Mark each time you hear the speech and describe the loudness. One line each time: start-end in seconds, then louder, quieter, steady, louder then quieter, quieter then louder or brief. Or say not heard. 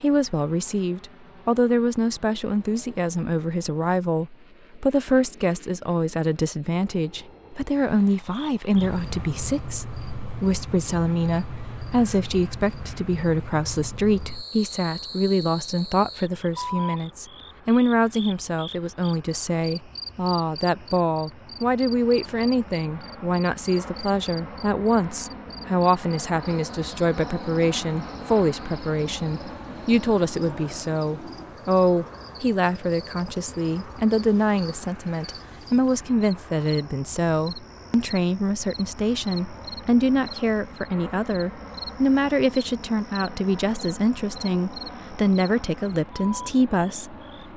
0.0-47.1 steady.